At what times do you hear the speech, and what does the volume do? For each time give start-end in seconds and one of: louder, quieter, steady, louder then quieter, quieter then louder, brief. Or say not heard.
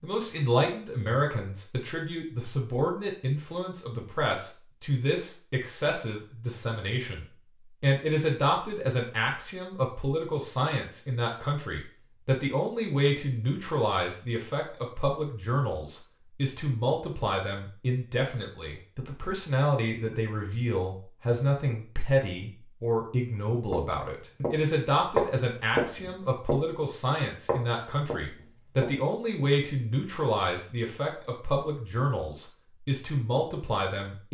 0.0-34.2 steady.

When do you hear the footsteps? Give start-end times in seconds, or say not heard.
23.7-24.6, 25.1-26.6, 27.4-28.9.